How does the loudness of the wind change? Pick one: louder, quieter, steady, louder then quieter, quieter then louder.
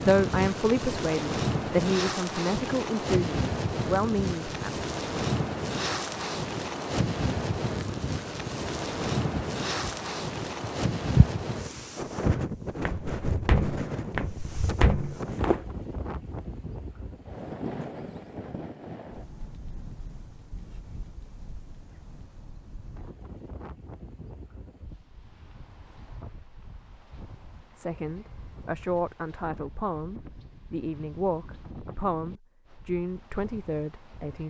quieter.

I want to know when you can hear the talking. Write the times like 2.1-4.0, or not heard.
0.0-4.8, 27.8-34.4.